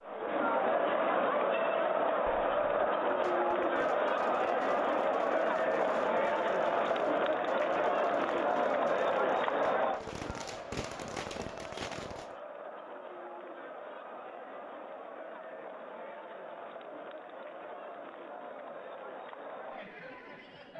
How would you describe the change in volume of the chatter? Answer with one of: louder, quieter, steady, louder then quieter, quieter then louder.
quieter.